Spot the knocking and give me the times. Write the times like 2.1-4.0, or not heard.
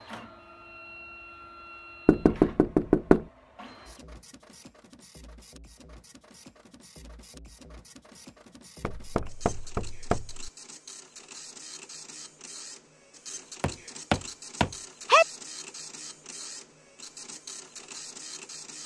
2.0-3.2, 8.8-10.5, 13.6-15.2.